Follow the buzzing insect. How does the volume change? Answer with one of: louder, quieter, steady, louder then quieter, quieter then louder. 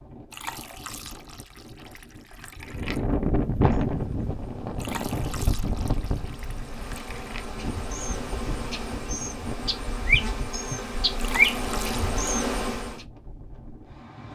louder.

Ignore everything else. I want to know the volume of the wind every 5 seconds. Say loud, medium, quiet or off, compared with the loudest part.
loud, medium, quiet.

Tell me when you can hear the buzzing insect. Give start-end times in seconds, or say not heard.
3.6-13.0.